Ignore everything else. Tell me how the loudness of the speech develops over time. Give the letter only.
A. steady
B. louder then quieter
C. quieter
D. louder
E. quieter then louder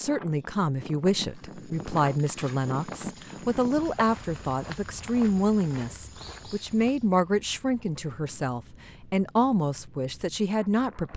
A.